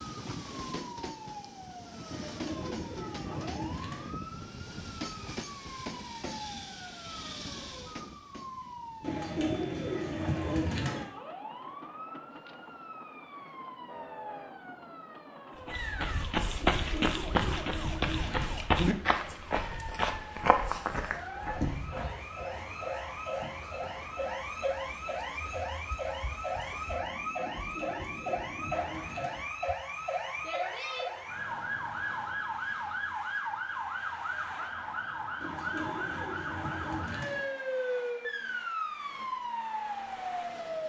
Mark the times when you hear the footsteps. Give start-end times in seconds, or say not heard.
15.7-22.2.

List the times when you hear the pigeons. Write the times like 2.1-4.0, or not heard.
2.1-4.1, 9.0-11.1, 16.6-18.6, 27.4-29.4, 35.4-37.4.